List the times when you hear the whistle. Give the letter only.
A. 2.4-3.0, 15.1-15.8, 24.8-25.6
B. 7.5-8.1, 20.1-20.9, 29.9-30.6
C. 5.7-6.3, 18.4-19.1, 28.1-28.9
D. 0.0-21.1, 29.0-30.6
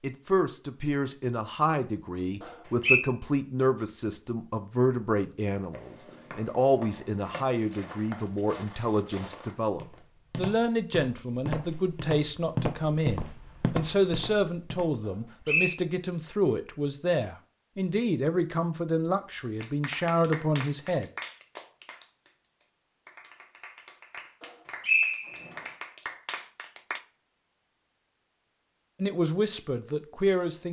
A.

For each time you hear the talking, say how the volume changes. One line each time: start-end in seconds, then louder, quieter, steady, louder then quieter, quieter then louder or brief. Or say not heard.
0.0-21.1 steady
29.0-30.6 brief.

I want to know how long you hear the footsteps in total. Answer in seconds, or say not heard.
9 s.